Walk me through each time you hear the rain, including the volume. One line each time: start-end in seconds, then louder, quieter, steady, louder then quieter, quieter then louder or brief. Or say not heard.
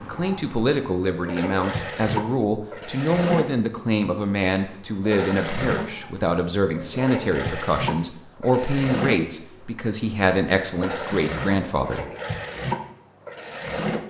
not heard.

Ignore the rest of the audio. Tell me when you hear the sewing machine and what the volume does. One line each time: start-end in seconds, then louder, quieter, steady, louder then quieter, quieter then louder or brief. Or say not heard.
0.0-14.0 steady.